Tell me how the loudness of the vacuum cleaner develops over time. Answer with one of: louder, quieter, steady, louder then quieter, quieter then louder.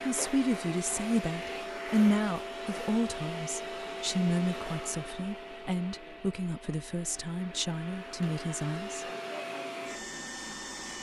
quieter then louder.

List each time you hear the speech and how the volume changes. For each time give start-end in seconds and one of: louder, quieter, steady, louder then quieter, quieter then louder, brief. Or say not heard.
0.1-9.1 quieter.